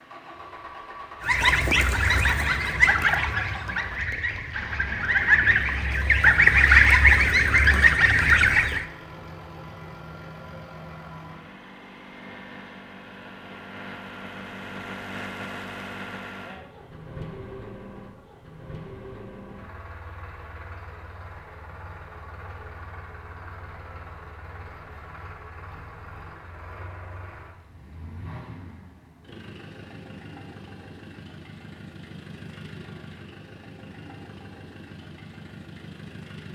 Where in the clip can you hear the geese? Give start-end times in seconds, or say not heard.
1.2-8.8.